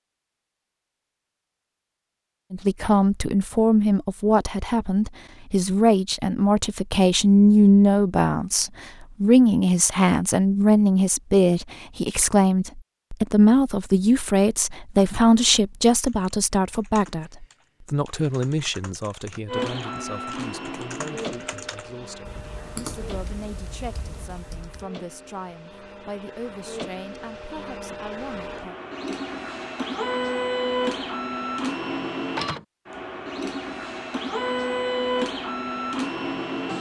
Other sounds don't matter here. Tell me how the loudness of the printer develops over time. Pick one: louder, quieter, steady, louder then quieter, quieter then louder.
quieter then louder.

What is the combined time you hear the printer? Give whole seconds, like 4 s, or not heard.
17 s.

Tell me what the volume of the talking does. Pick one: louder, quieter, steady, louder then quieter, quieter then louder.
quieter.